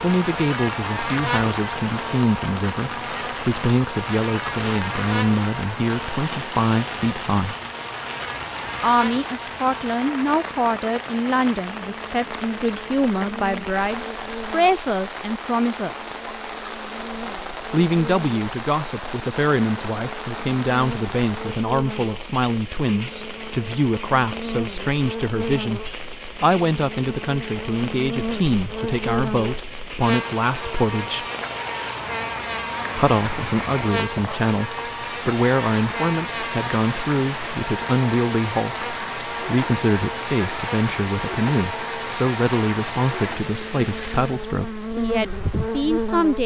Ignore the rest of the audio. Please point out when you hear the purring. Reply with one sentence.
The purring can't be heard in this clip.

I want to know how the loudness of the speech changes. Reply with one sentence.
The volume of the speech stays about the same.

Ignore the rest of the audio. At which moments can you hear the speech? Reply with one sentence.
The speech can be heard from 0.0 to 7.5 s, from 8.8 to 16.1 s, from 17.7 to 31.2 s and from 33.0 to 46.4 s.